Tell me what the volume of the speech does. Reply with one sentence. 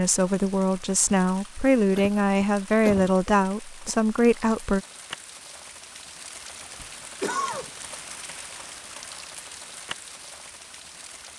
The volume of the speech stays about the same.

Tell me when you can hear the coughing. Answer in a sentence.
The coughing can be heard from 1.9 to 3.9 s and from 7.2 to 7.7 s.